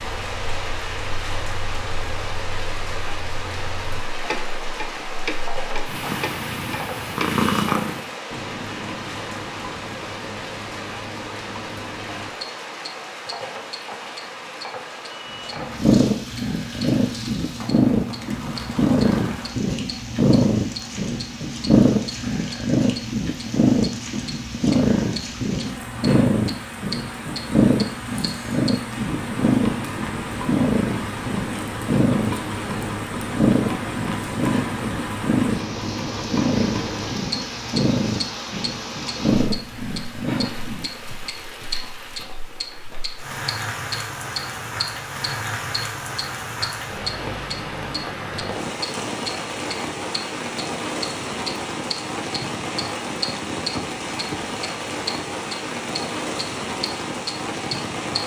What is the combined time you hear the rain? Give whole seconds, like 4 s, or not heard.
58 s.